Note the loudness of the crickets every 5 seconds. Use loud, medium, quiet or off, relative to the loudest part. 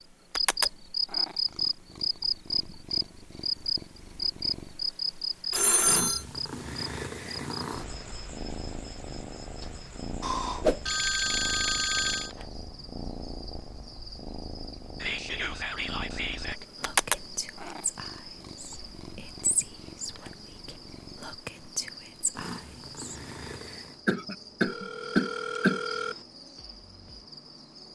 loud, medium, quiet, quiet, quiet, quiet.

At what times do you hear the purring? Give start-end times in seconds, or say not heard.
0.0-24.0.